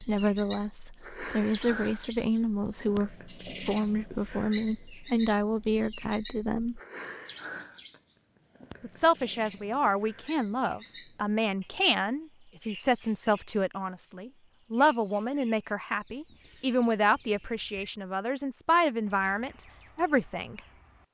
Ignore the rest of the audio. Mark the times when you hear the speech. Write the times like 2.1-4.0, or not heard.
0.0-6.8, 8.8-20.6.